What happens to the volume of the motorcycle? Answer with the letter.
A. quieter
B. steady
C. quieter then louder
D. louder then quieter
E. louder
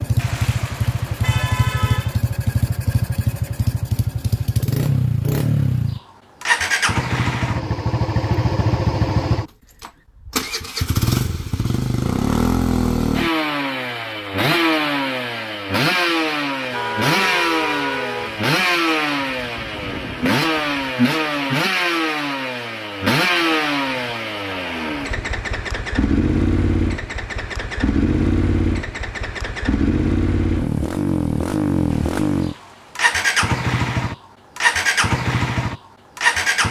B.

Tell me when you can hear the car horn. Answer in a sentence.
You can hear the car horn from 0.1 to 2.2 s, from 16.7 to 18.4 s and from 31.9 to 33.0 s.